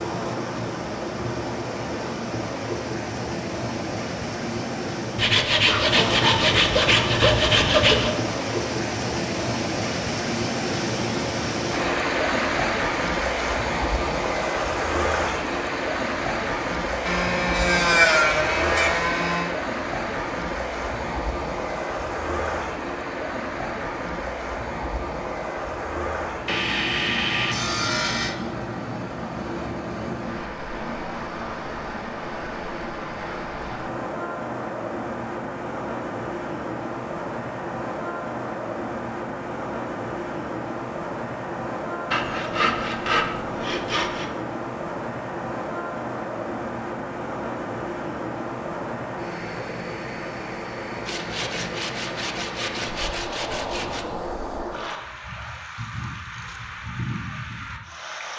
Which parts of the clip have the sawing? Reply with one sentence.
The sawing can be heard from 5.2 to 8.2 s, from 17.1 to 19.6 s, from 26.4 to 28.4 s, from 42.1 to 44.3 s and from 51.0 to 54.0 s.